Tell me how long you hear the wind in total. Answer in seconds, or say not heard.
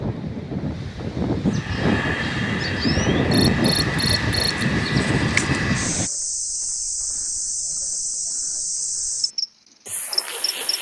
6 s.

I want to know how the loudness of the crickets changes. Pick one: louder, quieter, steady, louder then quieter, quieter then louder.
steady.